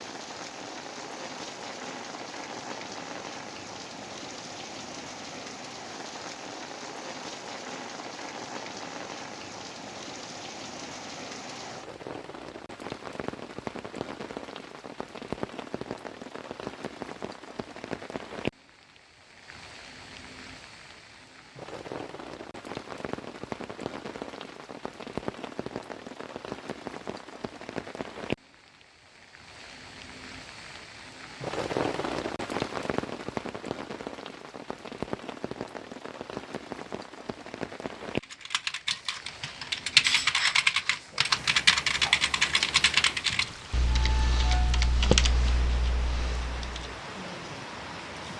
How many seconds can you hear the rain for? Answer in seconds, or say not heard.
48 s.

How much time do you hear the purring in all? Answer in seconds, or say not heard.
not heard.